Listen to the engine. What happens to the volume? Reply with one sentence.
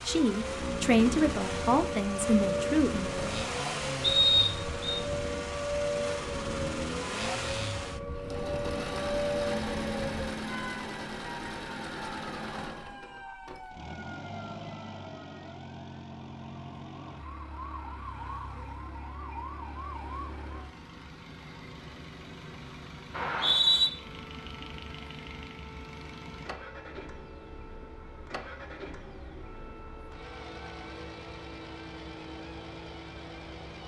The volume of the engine goes down.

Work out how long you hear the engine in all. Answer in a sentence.
The engine can be heard for 34 seconds in total.